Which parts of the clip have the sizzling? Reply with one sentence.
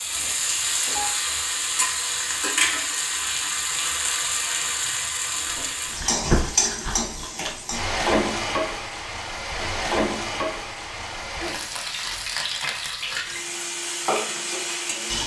You can hear the sizzling from 0.0 to 15.2 s.